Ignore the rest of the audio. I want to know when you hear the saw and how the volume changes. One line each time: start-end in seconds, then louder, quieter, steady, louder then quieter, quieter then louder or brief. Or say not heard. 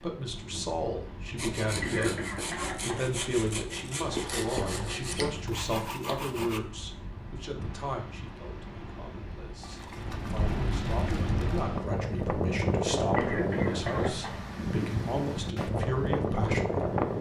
1.4-6.6 steady.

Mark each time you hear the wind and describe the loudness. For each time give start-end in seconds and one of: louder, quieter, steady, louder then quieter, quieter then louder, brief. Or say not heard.
0.0-17.1 louder.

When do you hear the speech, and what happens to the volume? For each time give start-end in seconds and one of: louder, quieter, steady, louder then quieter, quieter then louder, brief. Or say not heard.
0.0-16.9 quieter then louder.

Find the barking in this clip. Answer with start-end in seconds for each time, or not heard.
not heard.